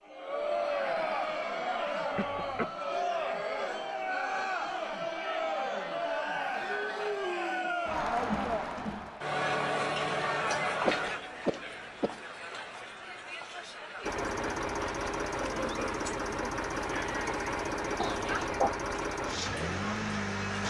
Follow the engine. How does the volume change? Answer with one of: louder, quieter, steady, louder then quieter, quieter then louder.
steady.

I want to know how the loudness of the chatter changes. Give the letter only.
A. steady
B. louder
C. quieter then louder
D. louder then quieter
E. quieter
E.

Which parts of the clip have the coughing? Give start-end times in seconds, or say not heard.
2.1-2.7, 10.8-12.2, 18.0-18.8.